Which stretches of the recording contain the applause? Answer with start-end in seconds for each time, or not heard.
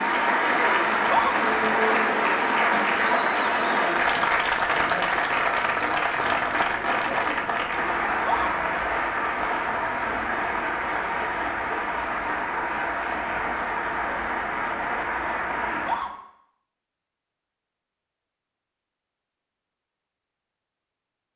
0.0-16.1.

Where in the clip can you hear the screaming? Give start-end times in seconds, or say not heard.
0.9-1.4, 8.1-8.5, 15.7-16.1.